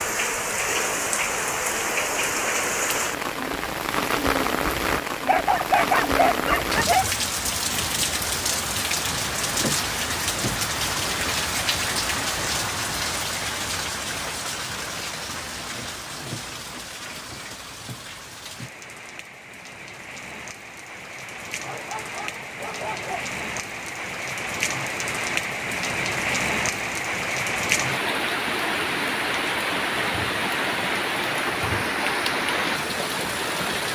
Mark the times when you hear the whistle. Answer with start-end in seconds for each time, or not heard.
not heard.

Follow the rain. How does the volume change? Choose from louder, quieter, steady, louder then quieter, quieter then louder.
quieter then louder.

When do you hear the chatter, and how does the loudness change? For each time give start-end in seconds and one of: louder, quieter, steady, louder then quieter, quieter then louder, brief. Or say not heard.
not heard.